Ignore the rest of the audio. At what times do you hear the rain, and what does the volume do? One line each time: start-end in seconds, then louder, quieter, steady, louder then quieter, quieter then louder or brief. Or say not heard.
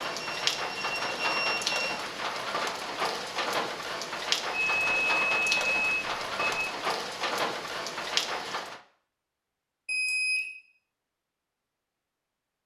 0.0-8.8 steady.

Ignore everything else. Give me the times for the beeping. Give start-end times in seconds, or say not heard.
0.1-2.0, 4.5-6.7, 9.8-10.4.